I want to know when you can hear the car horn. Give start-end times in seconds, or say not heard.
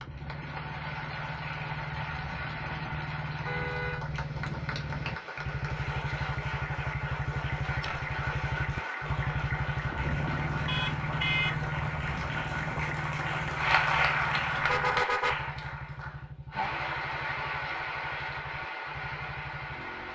3.5-4.0, 10.7-11.6, 14.6-15.3.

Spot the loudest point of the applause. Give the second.
14 s.